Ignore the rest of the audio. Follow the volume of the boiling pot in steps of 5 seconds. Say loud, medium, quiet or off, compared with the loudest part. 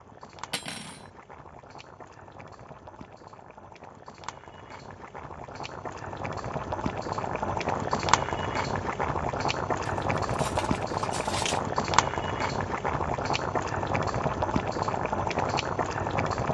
quiet, loud, loud, loud.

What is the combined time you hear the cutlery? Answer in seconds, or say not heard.
2 s.